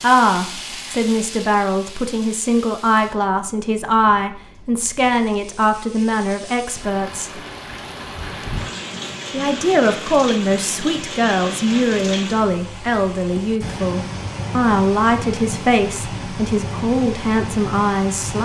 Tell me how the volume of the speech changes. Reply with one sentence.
The loudness of the speech stays about the same.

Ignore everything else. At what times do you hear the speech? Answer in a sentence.
You can hear the speech from 0.0 to 7.4 s and from 9.3 to 18.3 s.